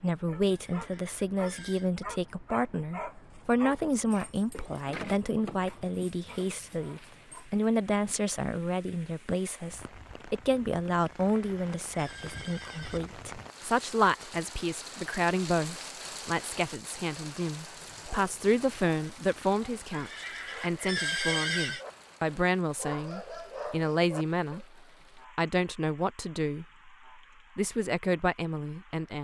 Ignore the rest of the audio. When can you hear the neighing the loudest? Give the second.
21 s.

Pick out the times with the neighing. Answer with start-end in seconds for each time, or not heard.
0.5-1.9, 11.2-13.0, 19.9-21.9.